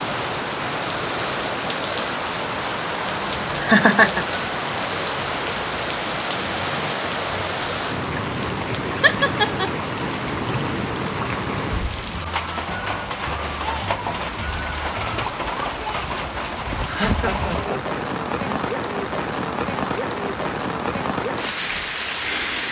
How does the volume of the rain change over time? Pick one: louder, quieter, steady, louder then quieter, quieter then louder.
steady.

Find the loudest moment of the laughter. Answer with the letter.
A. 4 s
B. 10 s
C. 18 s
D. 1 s
A.